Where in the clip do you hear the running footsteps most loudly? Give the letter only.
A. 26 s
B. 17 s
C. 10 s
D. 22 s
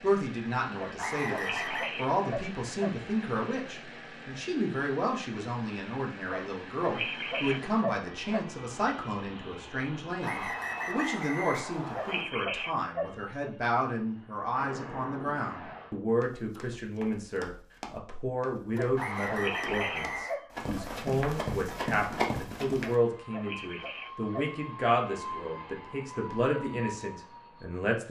D.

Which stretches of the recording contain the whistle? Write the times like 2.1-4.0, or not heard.
0.9-1.9, 10.2-12.2, 18.9-20.4.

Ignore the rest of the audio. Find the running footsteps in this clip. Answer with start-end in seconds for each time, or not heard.
16.2-22.9.